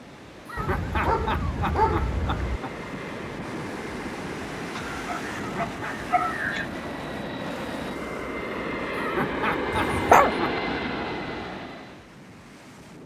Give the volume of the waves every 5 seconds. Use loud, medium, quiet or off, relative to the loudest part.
loud, loud, medium.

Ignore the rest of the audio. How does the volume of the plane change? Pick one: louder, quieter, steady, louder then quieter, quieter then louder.
louder.